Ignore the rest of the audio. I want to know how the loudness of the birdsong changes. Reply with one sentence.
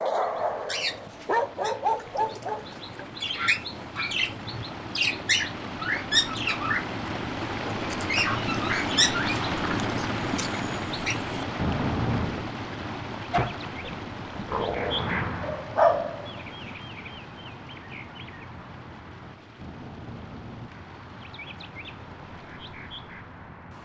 The volume of the birdsong goes down.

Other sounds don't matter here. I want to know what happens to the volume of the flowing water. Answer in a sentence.
The volume of the flowing water goes up, then down.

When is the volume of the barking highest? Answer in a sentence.
The volume of the barking peaks at 16 seconds.